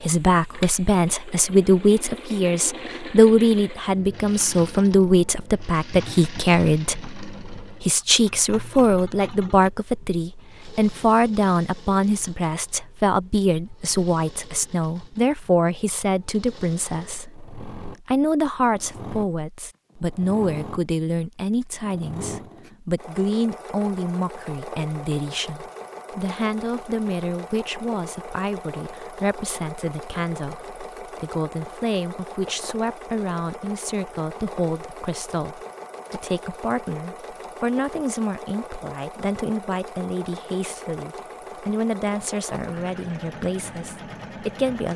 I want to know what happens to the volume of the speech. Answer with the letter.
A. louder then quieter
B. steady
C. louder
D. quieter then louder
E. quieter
E.